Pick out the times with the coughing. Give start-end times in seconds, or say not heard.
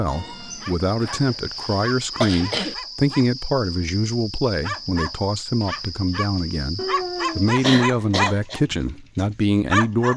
1.0-2.8, 7.6-8.6.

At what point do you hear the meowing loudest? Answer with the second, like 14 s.
7 s.